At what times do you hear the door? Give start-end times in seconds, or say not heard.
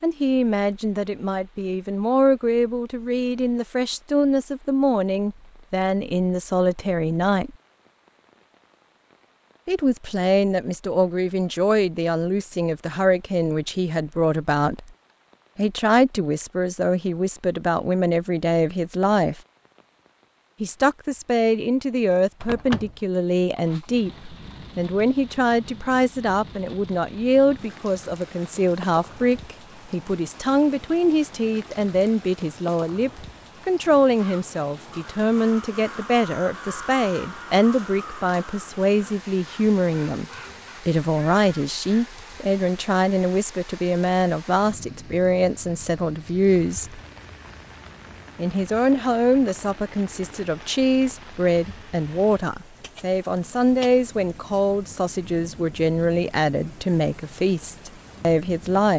22.4-23.0.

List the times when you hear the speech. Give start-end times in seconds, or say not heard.
0.0-7.5, 9.7-14.8, 15.6-19.4, 20.6-40.2, 40.9-47.0, 48.4-58.9.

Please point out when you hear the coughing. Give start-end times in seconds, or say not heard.
not heard.